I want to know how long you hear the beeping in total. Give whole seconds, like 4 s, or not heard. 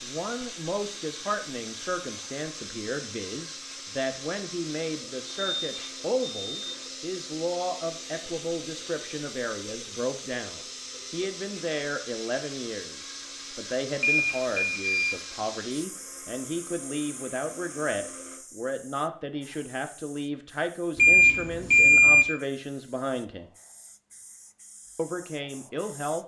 4 s.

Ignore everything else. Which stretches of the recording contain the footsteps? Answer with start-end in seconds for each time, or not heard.
not heard.